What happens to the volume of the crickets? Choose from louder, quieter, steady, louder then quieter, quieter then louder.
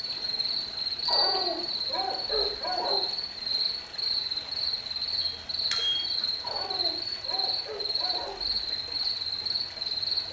steady.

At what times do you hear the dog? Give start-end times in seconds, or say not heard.
1.1-3.0, 6.4-8.3.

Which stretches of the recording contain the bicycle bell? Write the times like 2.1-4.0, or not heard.
1.1-1.6, 5.2-6.1.